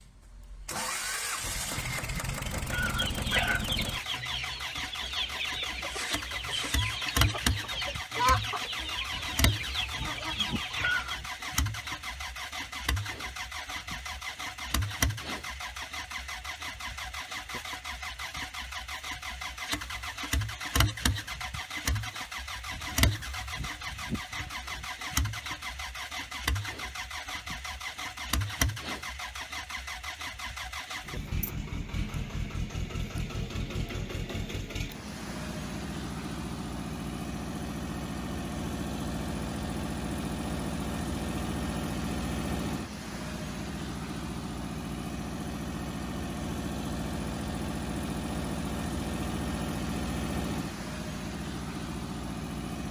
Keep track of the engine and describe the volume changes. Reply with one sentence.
The loudness of the engine stays about the same.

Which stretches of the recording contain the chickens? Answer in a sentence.
You can hear the chickens from 2.6 to 11.2 s.